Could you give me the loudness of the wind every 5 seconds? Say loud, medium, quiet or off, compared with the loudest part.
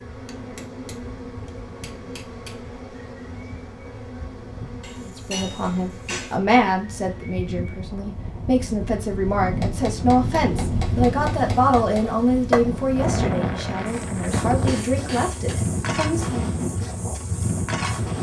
quiet, medium, loud, loud.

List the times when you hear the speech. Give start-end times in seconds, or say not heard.
5.0-16.4.